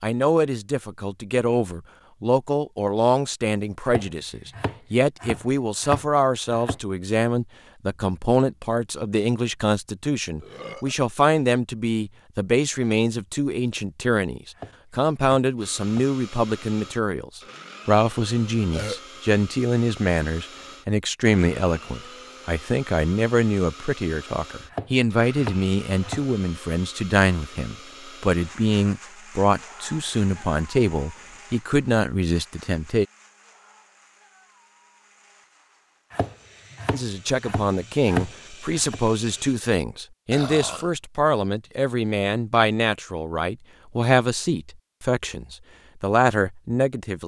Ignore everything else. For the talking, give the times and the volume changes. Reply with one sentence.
You can hear the talking from 0.0 to 33.0 s, at a steady volume; and from 36.9 to 47.2 s, at a steady volume.